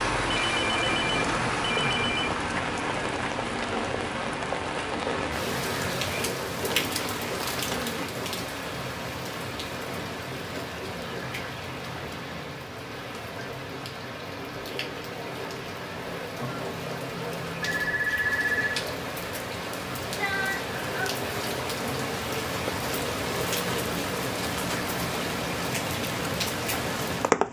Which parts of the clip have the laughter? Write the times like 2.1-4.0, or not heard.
not heard.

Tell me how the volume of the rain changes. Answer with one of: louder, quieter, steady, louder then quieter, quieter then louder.
quieter then louder.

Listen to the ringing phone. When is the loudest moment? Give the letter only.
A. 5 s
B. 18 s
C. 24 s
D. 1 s
B.